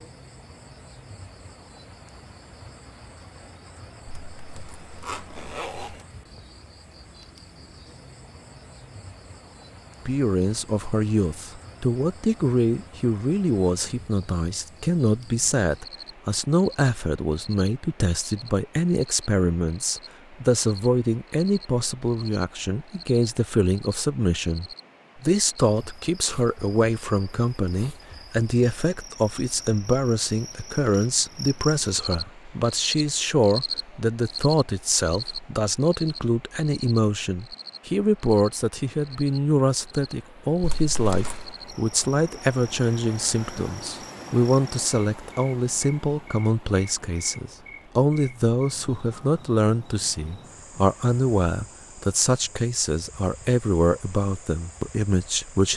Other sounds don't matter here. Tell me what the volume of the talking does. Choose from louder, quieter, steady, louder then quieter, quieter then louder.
steady.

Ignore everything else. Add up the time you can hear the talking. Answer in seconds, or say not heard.
46 s.